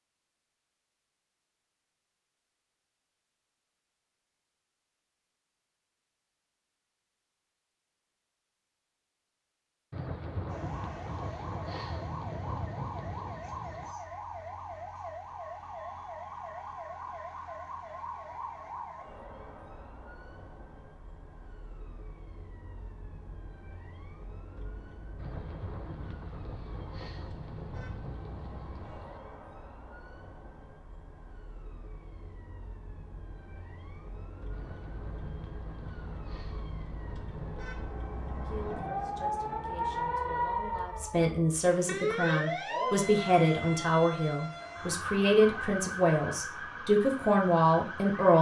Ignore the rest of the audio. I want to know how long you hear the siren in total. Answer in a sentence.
You can hear the siren for 38 seconds altogether.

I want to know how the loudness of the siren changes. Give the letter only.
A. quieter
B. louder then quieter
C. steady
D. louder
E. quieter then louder
E.